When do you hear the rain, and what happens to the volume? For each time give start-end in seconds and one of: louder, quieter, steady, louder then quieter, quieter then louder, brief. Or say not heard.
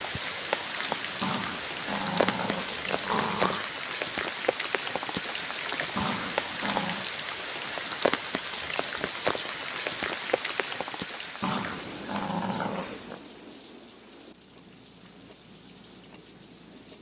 0.0-16.9 quieter.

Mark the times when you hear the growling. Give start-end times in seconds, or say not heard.
1.2-3.7, 6.0-7.0, 11.4-13.2.